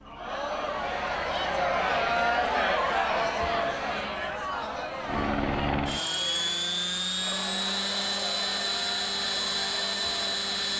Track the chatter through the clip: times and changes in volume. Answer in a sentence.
You can hear the chatter from 0.0 to 10.7 s, getting quieter.